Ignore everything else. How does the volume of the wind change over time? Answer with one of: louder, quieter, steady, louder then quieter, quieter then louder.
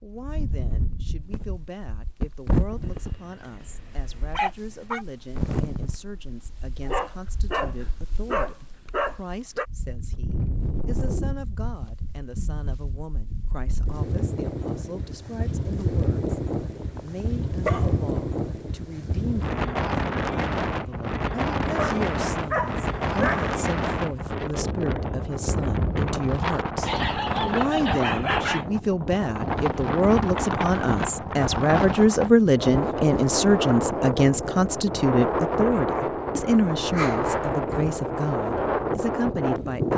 louder.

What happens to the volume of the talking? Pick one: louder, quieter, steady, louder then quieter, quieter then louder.
louder.